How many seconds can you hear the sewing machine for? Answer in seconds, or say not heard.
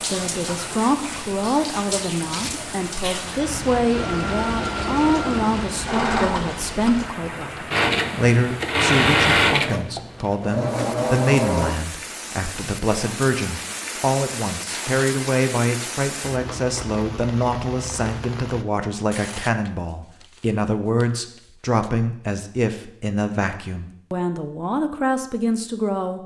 8 s.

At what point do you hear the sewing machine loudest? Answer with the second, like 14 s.
9 s.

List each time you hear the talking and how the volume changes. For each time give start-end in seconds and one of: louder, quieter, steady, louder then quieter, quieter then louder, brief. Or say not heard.
0.0-26.2 steady.